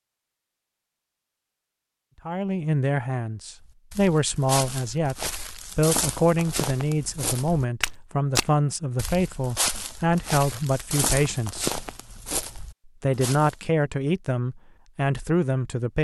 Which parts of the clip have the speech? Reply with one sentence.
You can hear the speech from 2.2 to 11.8 s and from 12.8 to 16.0 s.